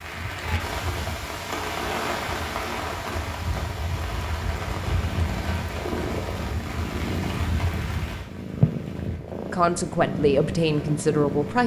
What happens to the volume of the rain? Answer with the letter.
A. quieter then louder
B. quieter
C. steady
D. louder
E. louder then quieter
B.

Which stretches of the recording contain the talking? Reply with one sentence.
You can hear the talking from 9.5 to 11.6 s.